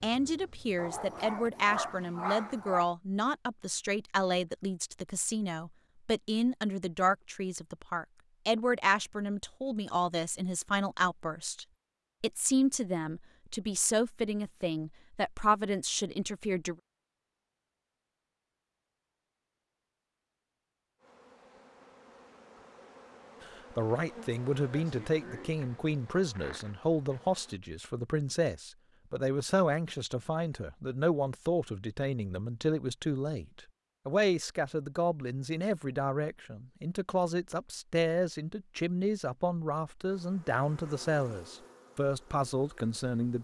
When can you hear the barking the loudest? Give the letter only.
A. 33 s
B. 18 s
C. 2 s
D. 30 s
C.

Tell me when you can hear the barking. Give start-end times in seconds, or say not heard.
0.8-2.9.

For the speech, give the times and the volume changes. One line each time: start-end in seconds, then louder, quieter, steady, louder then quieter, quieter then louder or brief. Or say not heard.
0.0-16.8 steady
23.4-43.4 steady.